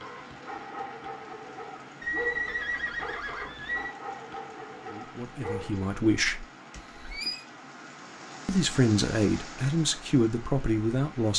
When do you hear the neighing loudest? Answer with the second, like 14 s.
2 s.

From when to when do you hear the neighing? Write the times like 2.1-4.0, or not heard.
2.0-4.0, 6.7-7.5.